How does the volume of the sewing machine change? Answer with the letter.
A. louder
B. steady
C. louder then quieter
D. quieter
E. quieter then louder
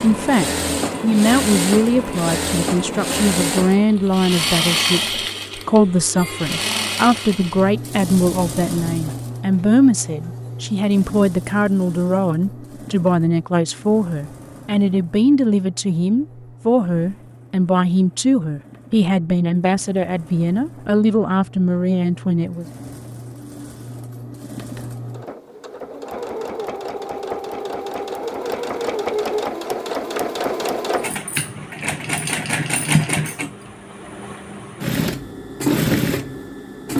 E.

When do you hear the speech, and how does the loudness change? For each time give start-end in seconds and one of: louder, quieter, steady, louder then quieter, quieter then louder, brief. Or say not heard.
0.0-22.6 steady.